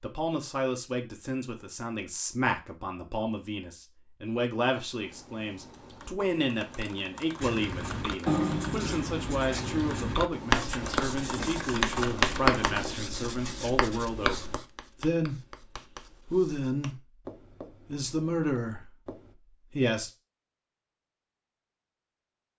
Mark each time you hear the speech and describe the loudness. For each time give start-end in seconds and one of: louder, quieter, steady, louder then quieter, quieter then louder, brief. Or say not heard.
0.0-15.4 steady
16.2-17.0 brief
17.9-19.1 brief
19.7-20.1 brief.